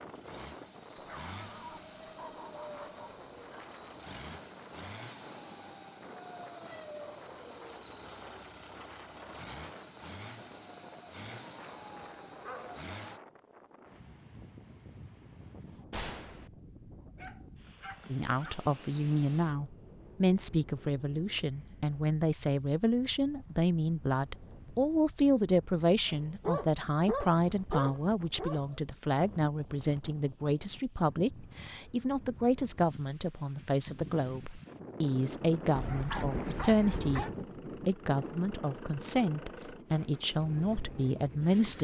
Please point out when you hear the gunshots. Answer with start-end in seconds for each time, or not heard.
15.9-16.5.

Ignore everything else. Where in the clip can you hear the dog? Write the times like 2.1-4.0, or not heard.
0.9-3.6, 11.7-12.8, 17.1-18.6, 26.1-28.8, 35.8-37.4.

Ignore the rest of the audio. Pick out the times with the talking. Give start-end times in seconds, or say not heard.
18.1-41.8.